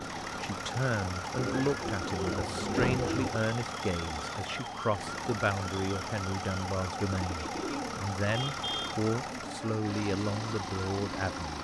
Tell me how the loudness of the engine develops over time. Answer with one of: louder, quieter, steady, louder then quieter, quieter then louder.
steady.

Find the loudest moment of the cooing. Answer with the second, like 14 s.
3 s.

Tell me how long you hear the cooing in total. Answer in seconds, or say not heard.
4 s.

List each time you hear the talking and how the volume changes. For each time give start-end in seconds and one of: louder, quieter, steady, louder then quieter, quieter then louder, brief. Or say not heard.
0.3-11.5 steady.